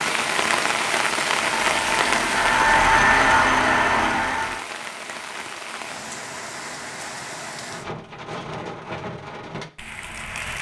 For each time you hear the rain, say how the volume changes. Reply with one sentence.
The rain can be heard from 0.0 to 10.5 s, getting quieter.